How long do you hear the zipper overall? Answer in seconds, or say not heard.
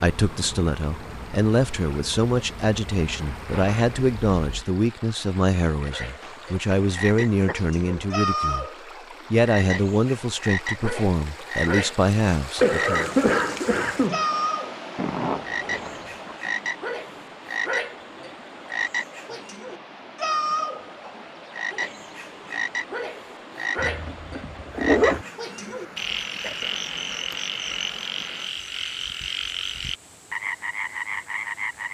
4 s.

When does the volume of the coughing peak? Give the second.
13 s.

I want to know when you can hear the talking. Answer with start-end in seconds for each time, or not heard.
0.0-8.7, 9.3-13.1.